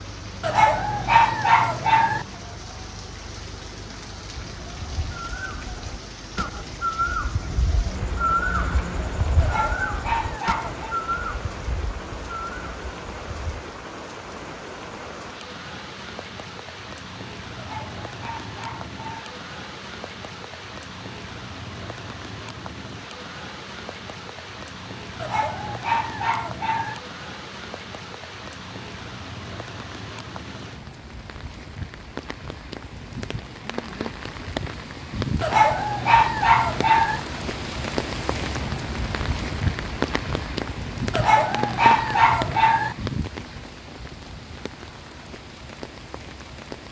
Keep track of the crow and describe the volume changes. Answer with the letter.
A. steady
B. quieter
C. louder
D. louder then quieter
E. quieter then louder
D.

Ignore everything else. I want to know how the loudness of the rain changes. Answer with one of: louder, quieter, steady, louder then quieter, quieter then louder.
louder.